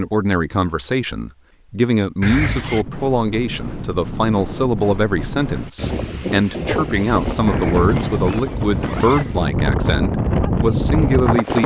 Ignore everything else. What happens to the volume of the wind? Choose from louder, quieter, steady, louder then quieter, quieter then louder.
louder.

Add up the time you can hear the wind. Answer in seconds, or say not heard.
9 s.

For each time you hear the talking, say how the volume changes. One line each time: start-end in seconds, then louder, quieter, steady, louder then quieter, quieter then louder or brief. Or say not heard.
0.0-11.6 steady.